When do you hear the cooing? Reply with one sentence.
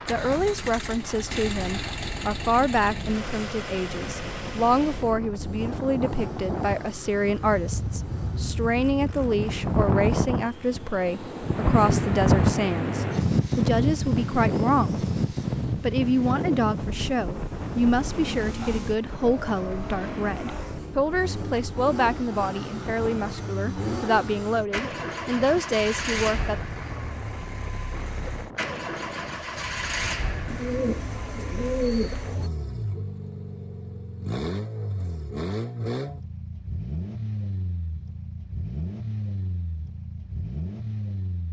You can hear the cooing from 30.4 to 32.5 s.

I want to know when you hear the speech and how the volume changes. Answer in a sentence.
You can hear the speech from 0.1 to 15.1 s, at a steady volume; and from 15.8 to 26.6 s, at a steady volume.